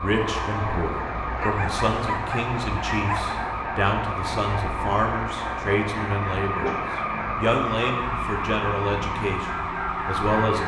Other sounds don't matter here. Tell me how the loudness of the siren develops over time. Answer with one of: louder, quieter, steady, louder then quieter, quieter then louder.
steady.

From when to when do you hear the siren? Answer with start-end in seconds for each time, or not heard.
0.0-10.6.